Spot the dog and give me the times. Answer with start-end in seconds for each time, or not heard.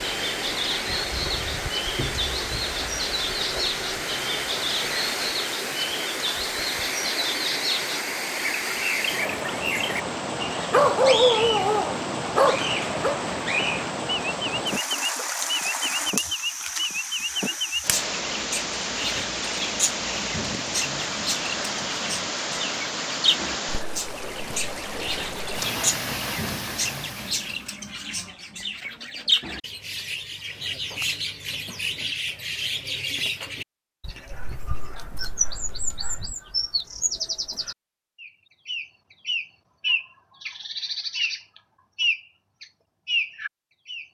10.7-13.2, 34.3-36.3.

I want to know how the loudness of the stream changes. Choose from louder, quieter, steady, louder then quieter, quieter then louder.
steady.